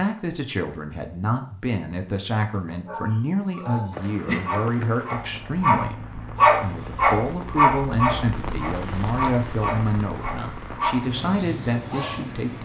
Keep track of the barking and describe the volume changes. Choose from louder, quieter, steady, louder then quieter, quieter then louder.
louder then quieter.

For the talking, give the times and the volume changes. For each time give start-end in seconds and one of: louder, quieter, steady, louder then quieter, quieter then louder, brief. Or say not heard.
0.0-12.6 steady.